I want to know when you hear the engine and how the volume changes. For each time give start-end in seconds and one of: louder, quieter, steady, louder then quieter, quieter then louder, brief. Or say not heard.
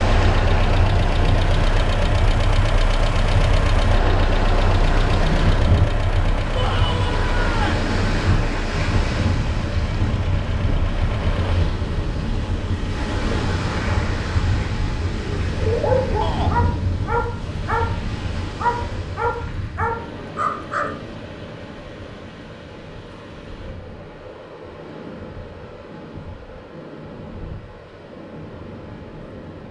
0.0-11.7 quieter.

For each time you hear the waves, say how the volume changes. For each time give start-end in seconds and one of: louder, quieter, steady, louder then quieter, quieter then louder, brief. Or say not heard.
0.0-29.6 quieter.